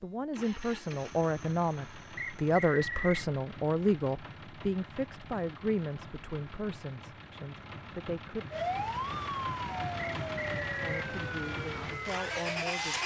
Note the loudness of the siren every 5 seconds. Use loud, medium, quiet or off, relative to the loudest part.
off, loud, medium.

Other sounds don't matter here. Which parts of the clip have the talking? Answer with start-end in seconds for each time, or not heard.
0.0-8.5, 10.8-13.0.